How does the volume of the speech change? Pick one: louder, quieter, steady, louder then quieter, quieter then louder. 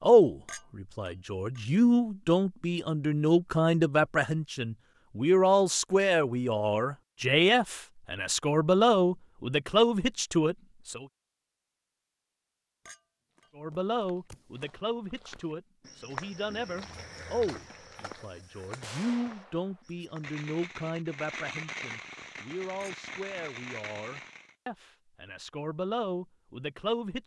quieter.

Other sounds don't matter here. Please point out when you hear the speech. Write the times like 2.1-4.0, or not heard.
0.0-11.1, 13.6-27.2.